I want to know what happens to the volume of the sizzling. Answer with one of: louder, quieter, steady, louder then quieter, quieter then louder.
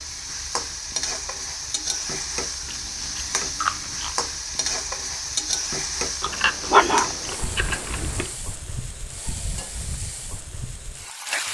quieter.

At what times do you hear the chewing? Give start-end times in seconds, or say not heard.
2.6-4.2, 6.2-8.3.